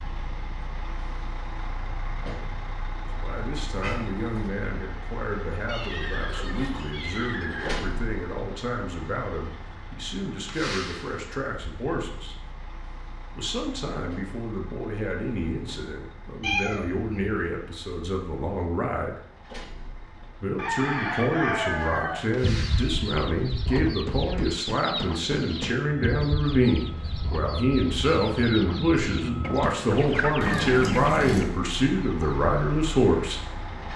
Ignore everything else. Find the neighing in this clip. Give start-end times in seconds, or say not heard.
5.7-7.7.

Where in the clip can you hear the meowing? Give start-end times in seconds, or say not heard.
3.8-4.5, 16.4-17.4, 30.4-31.5.